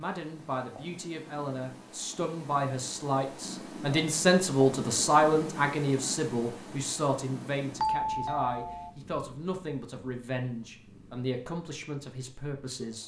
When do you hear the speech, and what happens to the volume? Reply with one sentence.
The speech can be heard from 0.0 to 13.0 s, getting louder then quieter.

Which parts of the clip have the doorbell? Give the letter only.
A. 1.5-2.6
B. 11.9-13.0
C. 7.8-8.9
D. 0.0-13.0
C.